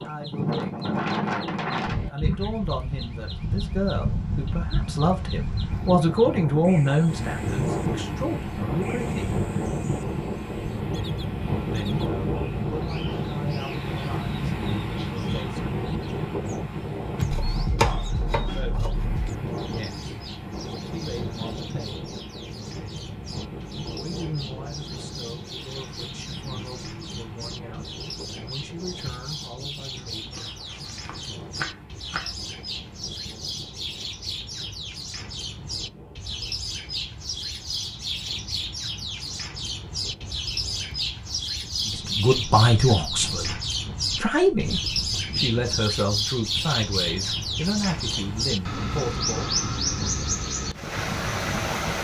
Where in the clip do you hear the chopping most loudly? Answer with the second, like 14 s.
18 s.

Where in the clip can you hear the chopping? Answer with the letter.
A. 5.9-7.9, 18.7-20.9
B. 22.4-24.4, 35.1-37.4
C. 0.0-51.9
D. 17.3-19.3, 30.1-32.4
D.